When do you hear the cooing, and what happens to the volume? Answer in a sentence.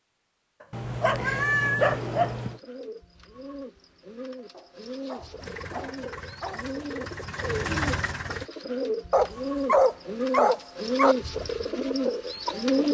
You can hear the cooing from 1.9 to 12.8 s, getting louder.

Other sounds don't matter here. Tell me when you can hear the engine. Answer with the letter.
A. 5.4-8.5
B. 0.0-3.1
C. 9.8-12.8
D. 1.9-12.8
A.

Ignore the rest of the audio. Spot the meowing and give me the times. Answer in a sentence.
The meowing can be heard from 0.7 to 2.6 s.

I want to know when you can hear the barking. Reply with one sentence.
The barking can be heard from 1.0 to 2.3 s, from 4.5 to 6.7 s and from 9.1 to 11.2 s.